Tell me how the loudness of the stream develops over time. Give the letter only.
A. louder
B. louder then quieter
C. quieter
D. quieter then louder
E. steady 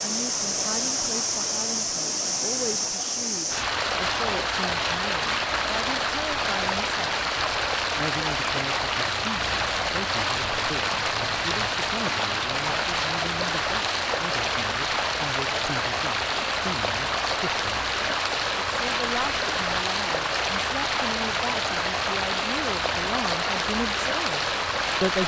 E.